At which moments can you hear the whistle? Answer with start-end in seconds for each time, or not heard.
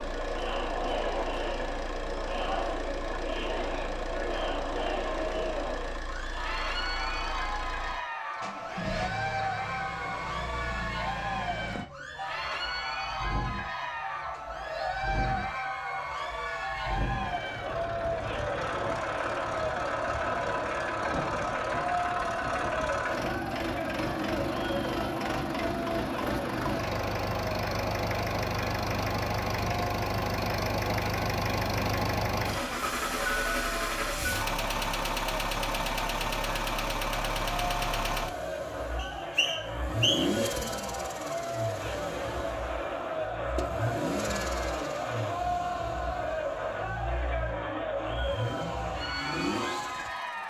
39.0-40.4.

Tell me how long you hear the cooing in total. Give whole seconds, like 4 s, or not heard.
not heard.